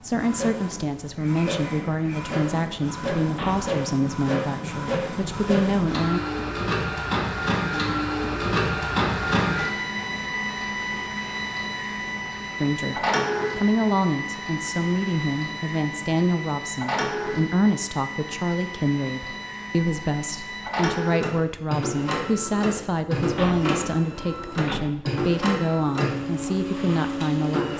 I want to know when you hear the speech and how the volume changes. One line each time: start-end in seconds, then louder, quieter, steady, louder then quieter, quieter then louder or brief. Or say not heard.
0.0-6.2 steady
12.6-27.7 steady.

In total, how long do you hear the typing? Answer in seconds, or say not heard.
not heard.